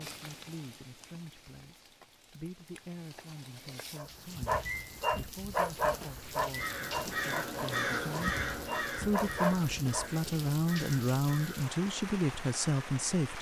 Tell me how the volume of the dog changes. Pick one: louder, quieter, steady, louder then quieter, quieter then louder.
quieter then louder.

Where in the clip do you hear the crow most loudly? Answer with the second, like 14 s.
8 s.